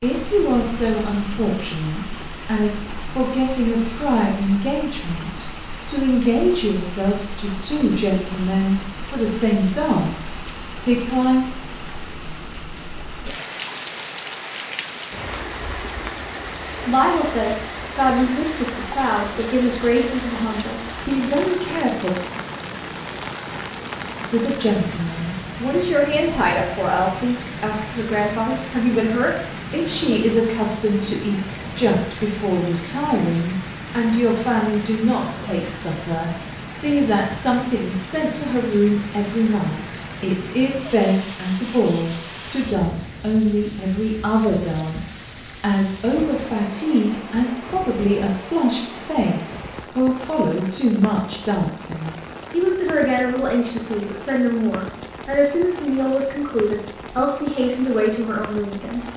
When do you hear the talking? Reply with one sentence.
You can hear the talking from 0.0 to 11.4 s, from 16.9 to 22.1 s and from 24.3 to 59.0 s.